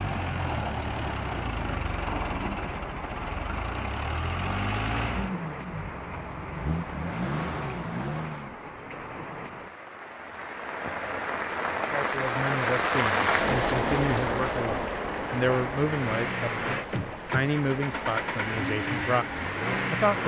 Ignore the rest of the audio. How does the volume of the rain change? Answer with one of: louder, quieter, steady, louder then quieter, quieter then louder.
louder then quieter.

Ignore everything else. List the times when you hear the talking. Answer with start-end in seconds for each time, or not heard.
11.9-20.2.